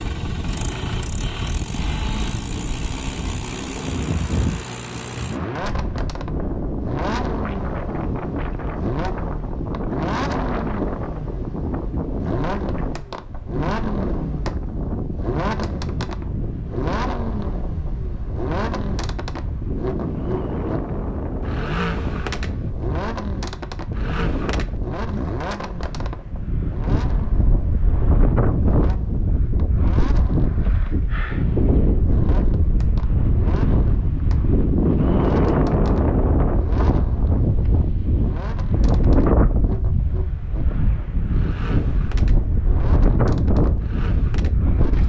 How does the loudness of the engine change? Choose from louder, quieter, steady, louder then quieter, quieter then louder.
quieter.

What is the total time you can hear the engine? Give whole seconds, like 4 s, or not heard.
45 s.